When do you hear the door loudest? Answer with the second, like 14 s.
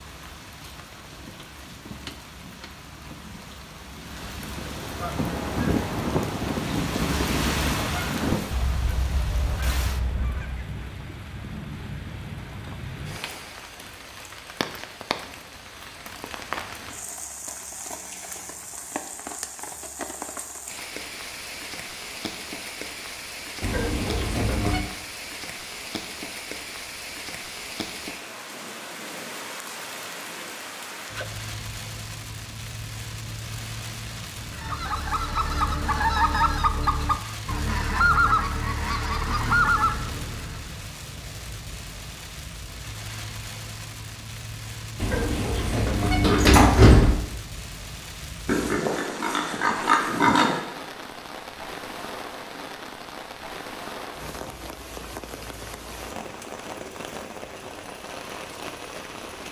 47 s.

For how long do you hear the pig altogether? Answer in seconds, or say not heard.
2 s.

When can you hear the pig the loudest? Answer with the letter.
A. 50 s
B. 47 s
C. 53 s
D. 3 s
A.